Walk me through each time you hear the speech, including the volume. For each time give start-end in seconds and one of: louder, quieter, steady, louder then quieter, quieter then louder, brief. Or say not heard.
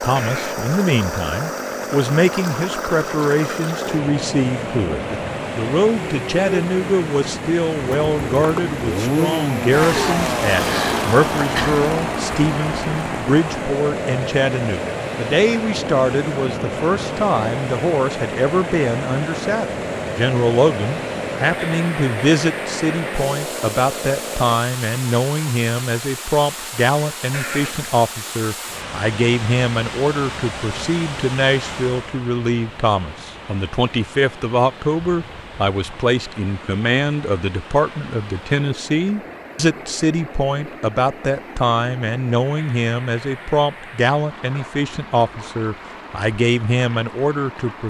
0.0-47.8 steady.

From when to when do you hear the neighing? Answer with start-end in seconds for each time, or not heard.
0.1-0.7, 27.3-27.9.